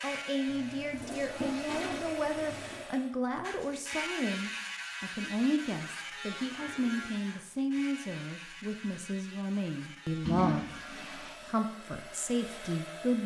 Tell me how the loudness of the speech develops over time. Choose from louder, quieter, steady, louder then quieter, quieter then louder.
steady.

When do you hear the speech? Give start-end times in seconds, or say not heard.
0.0-13.2.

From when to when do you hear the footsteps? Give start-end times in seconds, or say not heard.
not heard.